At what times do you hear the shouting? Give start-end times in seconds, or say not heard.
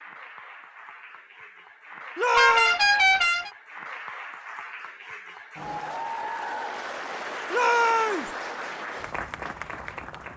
2.1-2.8, 7.5-8.3.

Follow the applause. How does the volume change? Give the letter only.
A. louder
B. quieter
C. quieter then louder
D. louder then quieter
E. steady
A.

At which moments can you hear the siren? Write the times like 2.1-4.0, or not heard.
not heard.